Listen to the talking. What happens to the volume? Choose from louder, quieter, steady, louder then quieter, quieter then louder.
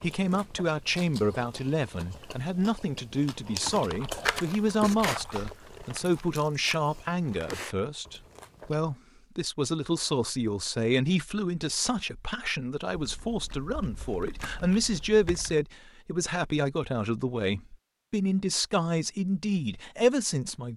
steady.